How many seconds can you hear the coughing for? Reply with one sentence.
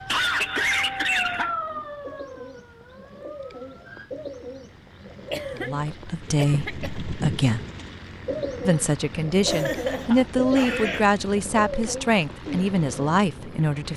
You can hear the coughing for 5 seconds altogether.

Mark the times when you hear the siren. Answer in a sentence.
You can hear the siren from 0.0 to 4.2 s.